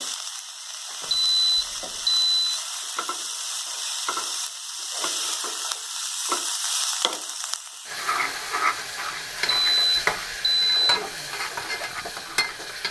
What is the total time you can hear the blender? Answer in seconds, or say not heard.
not heard.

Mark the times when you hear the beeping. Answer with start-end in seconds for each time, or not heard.
1.1-2.6, 9.5-11.0.